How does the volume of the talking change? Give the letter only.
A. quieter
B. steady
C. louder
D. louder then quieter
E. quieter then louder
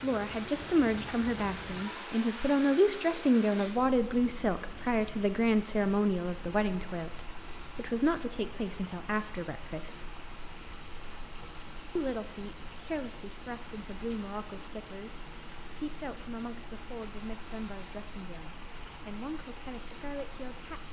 A.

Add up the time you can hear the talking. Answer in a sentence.
The talking can be heard for 19 seconds in total.